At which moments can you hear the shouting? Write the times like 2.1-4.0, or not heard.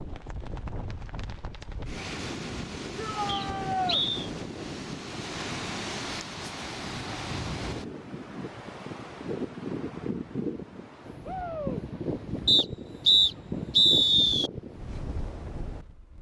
3.0-4.0, 11.2-11.8.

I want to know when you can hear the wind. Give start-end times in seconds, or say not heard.
0.0-16.1.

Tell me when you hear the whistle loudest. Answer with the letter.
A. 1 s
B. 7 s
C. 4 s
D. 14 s
D.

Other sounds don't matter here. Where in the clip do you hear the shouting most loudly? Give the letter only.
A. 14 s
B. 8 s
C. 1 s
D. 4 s
D.